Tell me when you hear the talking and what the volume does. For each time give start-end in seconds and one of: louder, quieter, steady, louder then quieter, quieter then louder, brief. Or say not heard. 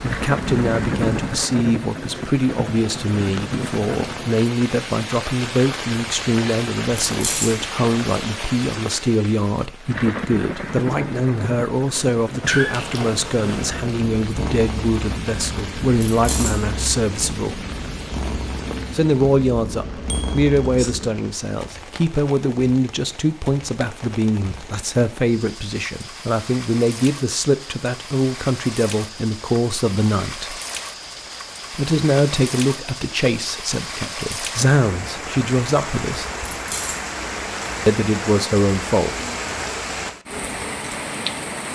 0.0-17.6 steady
18.9-30.6 steady
31.8-36.2 quieter then louder
37.9-39.1 brief.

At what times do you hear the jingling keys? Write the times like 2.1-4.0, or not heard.
6.9-7.7, 15.9-16.6, 36.5-37.0.